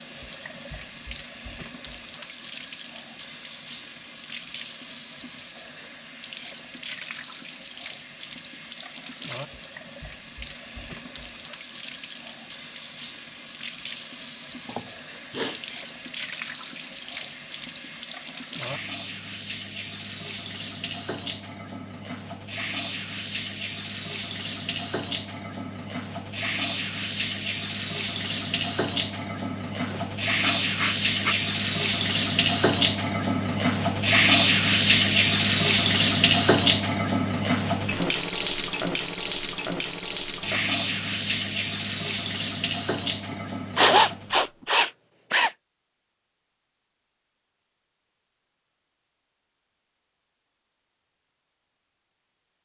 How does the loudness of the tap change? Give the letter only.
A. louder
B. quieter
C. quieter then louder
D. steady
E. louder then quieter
A.